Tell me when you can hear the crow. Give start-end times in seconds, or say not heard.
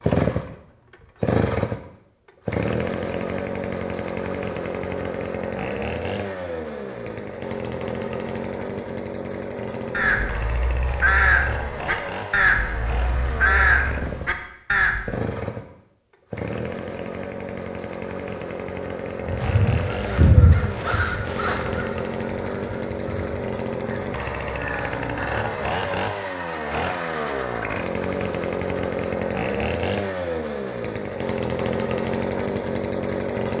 9.9-15.2, 19.2-26.0.